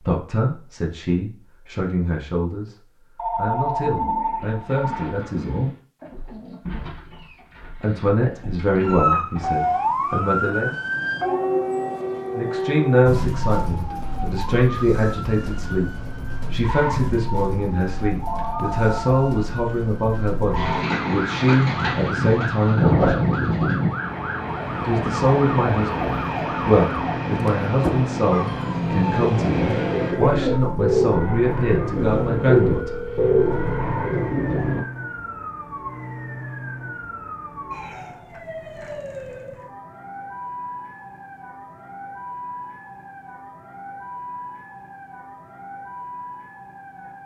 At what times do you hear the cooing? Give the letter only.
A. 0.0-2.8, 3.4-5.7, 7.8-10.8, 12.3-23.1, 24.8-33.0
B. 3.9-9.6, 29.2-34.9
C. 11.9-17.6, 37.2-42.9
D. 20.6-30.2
B.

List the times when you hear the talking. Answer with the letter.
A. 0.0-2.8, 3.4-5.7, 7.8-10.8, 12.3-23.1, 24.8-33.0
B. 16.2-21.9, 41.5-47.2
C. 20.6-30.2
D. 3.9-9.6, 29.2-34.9
A.